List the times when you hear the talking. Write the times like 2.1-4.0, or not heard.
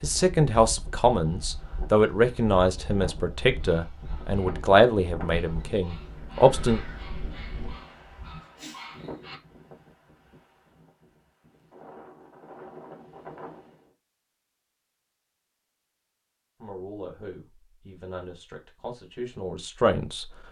0.0-6.8, 16.6-20.2.